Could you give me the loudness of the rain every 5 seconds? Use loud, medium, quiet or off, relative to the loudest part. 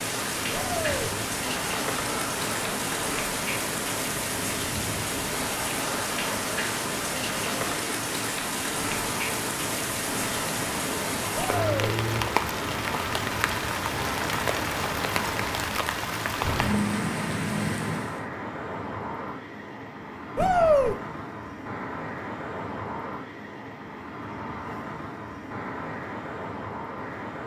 loud, loud, loud, loud, off, off.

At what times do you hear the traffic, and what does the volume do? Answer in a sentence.
The traffic can be heard from 0.0 to 27.4 s, at a steady volume.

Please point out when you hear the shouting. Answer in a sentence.
The shouting can be heard from 0.5 to 1.1 s, from 11.3 to 11.9 s and from 20.4 to 20.9 s.